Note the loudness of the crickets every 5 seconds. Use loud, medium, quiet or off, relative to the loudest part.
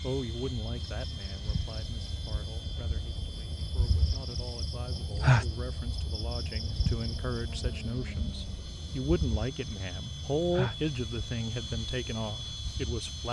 medium, loud, medium.